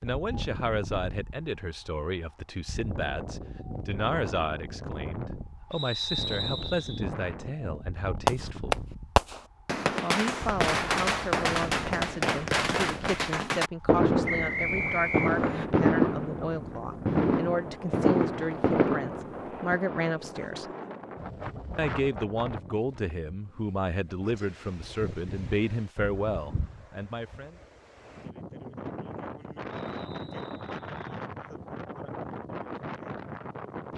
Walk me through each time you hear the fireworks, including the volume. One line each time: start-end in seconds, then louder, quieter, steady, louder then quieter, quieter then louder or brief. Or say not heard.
8.2-19.8 steady.